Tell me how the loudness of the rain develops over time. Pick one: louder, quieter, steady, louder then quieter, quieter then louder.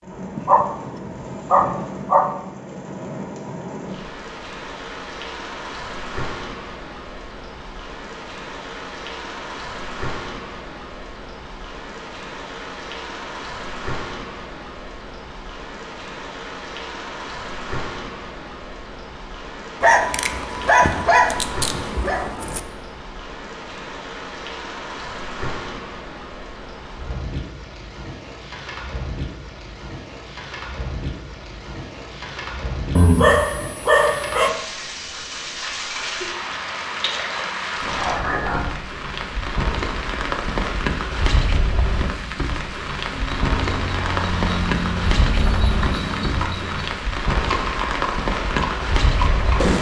louder.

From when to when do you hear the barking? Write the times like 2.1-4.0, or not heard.
0.3-2.3, 19.8-22.6, 33.0-34.5, 37.8-38.7.